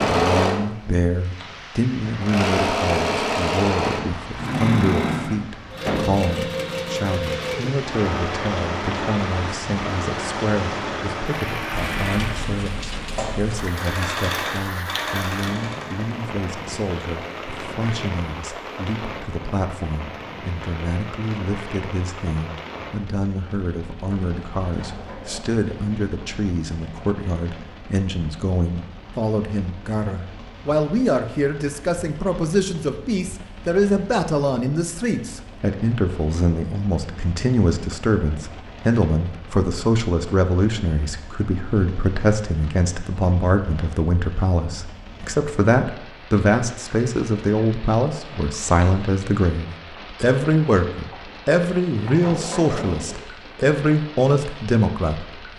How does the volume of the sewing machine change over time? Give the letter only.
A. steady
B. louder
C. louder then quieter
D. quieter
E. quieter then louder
D.